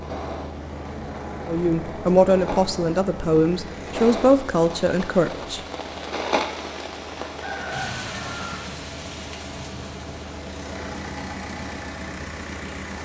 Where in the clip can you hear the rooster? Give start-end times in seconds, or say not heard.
7.2-8.7.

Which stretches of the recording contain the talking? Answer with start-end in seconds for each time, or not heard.
1.4-5.6.